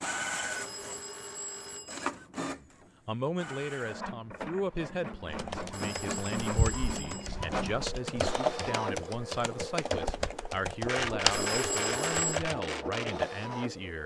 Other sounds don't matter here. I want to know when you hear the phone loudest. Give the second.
12 s.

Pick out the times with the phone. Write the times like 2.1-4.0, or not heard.
0.5-2.0, 5.7-7.3, 11.3-12.4.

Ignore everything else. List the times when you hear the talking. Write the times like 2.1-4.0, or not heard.
2.5-14.0.